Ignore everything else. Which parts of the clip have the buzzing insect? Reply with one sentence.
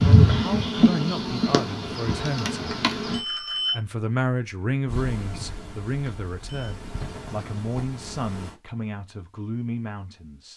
You can hear the buzzing insect from 0.0 to 3.2 s and from 4.8 to 8.6 s.